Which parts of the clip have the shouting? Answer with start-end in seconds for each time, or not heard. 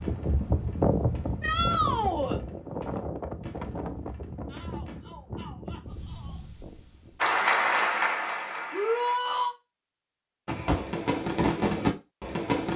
1.4-2.4, 4.5-6.4, 8.7-9.6.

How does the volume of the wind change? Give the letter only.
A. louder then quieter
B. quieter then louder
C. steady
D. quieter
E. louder
D.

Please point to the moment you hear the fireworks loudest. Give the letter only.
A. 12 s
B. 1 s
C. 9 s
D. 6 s
A.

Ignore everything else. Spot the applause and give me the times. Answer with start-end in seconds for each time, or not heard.
7.2-9.2.